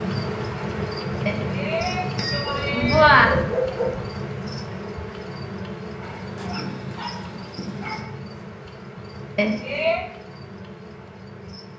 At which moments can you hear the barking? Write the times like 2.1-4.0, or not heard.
2.3-4.2, 6.0-8.1.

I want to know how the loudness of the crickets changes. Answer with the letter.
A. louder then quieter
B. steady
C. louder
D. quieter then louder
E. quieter
E.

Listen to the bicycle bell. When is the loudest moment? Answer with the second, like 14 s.
3 s.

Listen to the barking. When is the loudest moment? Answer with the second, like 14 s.
3 s.